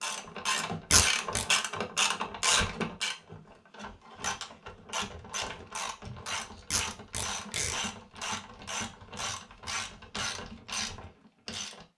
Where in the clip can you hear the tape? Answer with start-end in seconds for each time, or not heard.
0.9-1.4, 6.7-7.8.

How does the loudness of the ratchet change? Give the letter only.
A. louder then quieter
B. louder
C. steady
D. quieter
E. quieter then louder
D.